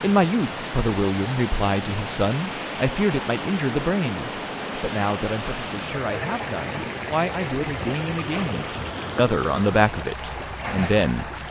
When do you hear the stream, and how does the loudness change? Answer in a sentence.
The stream can be heard from 0.0 to 11.4 s, at a steady volume.